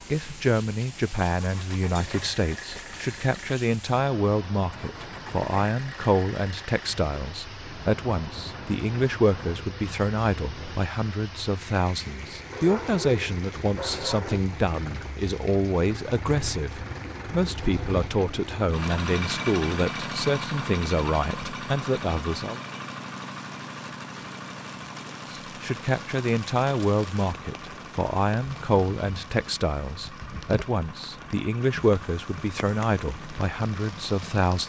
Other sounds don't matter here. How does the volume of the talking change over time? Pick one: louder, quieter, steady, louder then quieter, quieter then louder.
steady.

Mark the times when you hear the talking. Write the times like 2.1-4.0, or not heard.
0.1-22.6, 25.3-34.6.